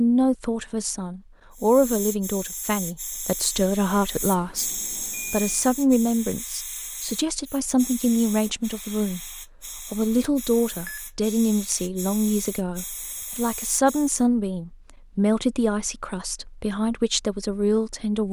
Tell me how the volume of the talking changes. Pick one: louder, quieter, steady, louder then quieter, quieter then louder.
steady.